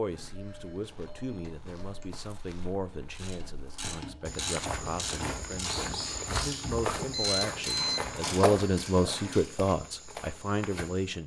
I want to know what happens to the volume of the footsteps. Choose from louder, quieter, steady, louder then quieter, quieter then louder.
louder then quieter.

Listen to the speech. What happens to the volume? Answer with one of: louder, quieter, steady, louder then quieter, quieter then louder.
louder.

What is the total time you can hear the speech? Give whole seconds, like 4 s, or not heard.
11 s.